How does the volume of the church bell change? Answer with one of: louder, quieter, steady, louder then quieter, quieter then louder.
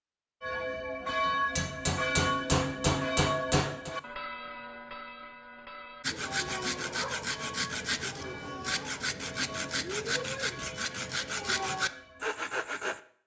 quieter.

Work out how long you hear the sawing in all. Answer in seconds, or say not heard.
7 s.